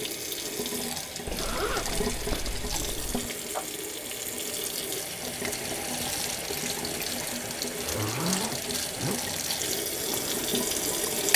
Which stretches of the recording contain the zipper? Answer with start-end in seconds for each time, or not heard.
1.2-3.3, 7.8-9.2.